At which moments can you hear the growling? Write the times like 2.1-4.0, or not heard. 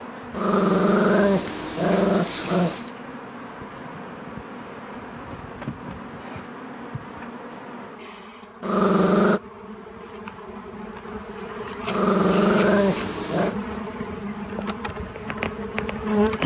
0.3-2.9, 8.6-9.4, 11.8-13.6.